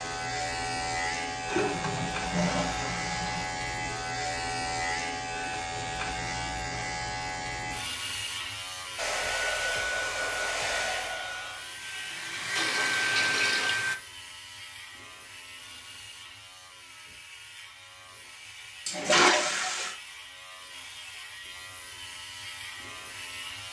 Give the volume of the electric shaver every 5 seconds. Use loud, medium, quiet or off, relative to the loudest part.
loud, loud, medium, quiet, medium.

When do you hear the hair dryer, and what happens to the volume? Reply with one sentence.
The hair dryer can be heard from 8.9 to 14.0 s, getting quieter then louder.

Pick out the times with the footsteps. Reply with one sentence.
You can't hear the footsteps here.